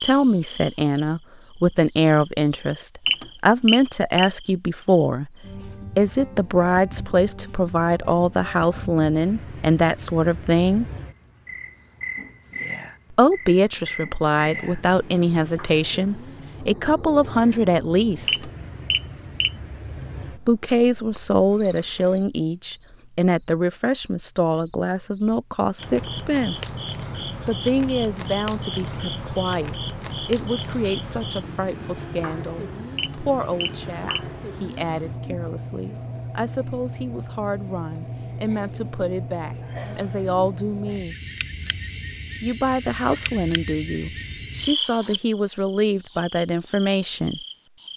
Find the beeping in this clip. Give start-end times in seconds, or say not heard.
3.0-4.3, 18.2-19.5, 33.0-34.2.